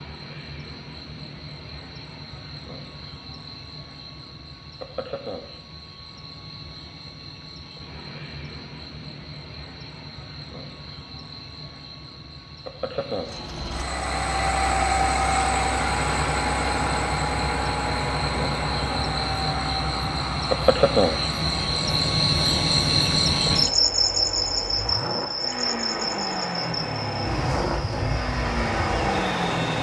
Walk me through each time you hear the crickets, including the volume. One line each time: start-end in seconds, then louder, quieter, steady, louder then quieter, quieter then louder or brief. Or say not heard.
0.0-29.6 louder.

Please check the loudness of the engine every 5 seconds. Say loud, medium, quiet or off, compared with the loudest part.
off, off, loud, loud, medium, loud.